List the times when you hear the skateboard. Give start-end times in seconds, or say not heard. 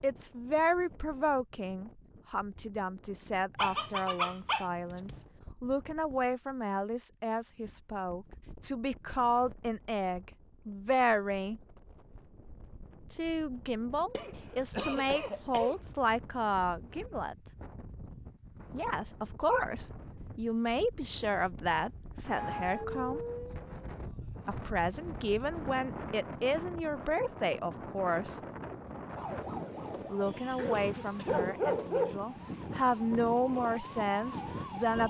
not heard.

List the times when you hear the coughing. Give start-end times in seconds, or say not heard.
14.1-15.8, 30.7-31.6.